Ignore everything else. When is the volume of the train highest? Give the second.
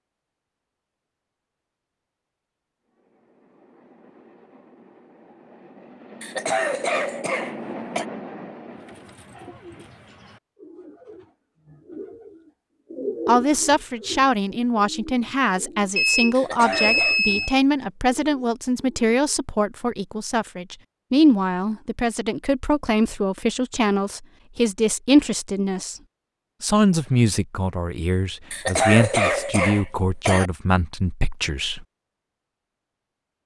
8 s.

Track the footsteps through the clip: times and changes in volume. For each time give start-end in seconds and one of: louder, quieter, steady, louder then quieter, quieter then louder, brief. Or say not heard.
not heard.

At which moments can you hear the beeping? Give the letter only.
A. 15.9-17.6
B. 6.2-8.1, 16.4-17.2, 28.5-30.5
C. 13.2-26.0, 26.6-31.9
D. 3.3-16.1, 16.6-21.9
A.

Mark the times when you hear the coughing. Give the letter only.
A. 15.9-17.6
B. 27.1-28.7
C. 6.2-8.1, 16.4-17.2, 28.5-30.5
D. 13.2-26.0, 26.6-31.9
C.